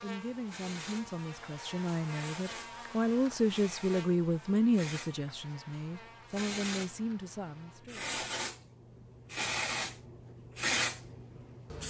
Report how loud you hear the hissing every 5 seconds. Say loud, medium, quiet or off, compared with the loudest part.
medium, loud, loud.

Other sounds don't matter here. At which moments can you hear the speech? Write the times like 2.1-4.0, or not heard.
0.0-8.1.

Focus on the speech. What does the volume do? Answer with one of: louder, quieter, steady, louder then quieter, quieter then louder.
louder then quieter.